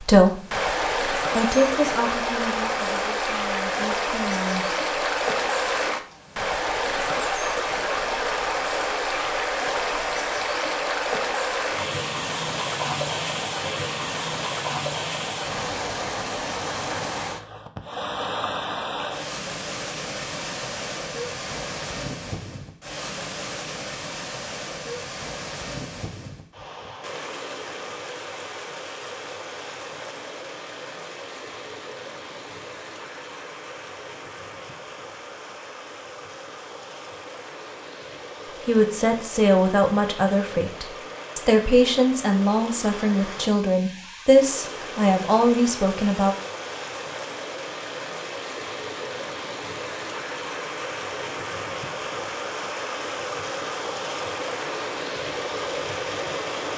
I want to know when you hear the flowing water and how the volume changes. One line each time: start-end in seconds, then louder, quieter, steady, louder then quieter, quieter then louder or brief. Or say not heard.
0.0-56.7 quieter then louder.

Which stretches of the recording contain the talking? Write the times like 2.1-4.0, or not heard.
0.0-4.8, 38.5-46.4.